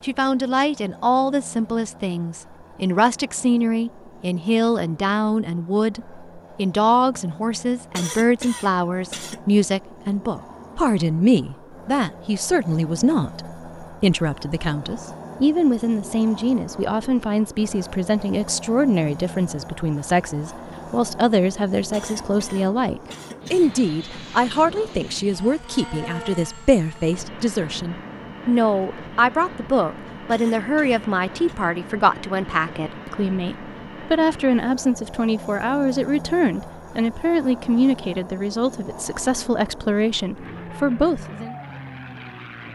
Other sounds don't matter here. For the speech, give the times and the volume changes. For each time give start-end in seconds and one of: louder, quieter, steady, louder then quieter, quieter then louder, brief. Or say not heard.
0.0-41.5 steady.